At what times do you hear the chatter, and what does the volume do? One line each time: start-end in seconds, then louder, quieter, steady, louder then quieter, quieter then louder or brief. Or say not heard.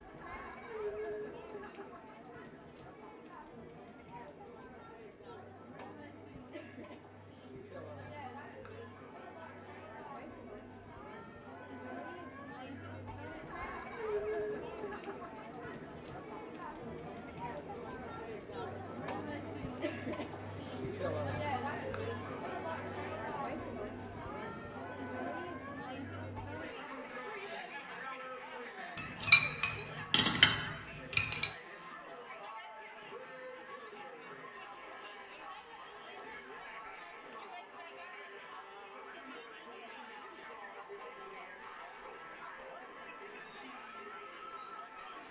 0.0-45.2 louder then quieter.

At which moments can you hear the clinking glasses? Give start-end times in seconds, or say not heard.
28.9-31.5.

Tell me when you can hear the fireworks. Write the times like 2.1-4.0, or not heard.
not heard.